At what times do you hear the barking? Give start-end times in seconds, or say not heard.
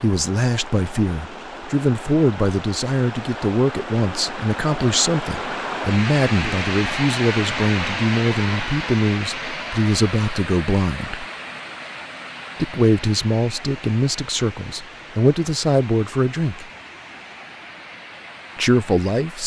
not heard.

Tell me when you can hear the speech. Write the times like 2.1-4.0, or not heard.
0.0-11.2, 12.6-16.6, 18.6-19.4.